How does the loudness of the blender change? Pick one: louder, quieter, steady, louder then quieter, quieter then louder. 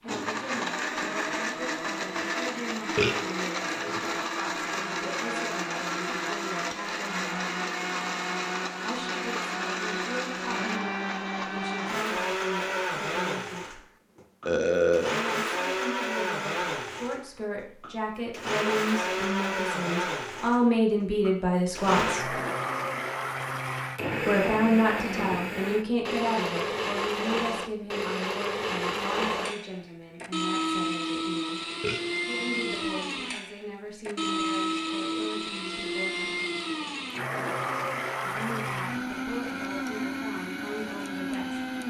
steady.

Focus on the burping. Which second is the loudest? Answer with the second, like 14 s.
15 s.